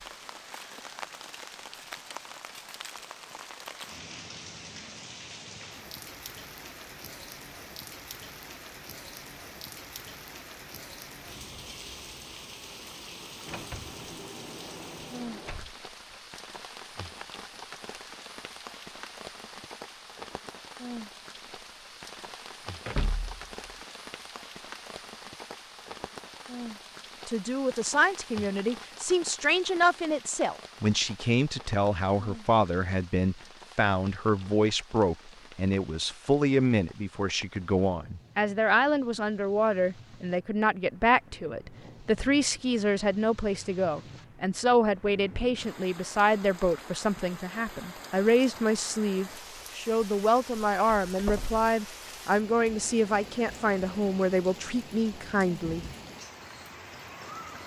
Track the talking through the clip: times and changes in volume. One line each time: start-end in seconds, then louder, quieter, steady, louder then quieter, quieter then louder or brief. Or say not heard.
27.2-55.9 steady.